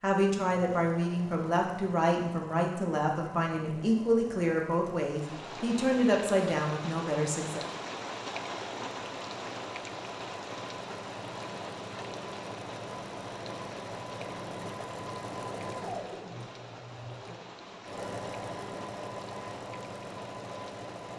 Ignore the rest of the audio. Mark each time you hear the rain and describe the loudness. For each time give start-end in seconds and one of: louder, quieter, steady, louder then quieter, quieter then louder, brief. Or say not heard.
5.0-21.1 quieter.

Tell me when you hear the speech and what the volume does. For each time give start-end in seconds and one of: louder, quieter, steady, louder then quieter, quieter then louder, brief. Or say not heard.
0.0-7.7 steady.